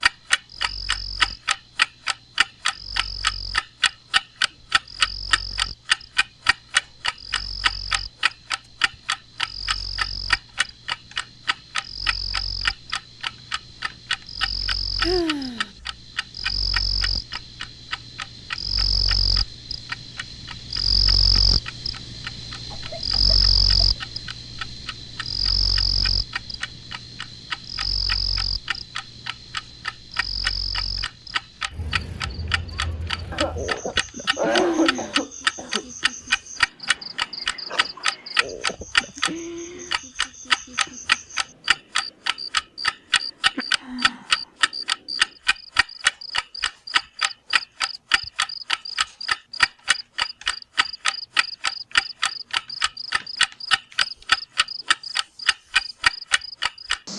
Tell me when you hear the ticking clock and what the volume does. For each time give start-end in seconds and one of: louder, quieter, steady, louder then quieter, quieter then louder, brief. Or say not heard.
0.0-39.3 quieter then louder
39.9-57.0 steady.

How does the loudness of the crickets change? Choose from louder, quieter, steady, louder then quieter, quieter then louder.
louder then quieter.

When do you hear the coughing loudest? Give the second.
35 s.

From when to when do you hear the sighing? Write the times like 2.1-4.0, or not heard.
15.0-15.7, 34.5-35.2, 43.0-44.5.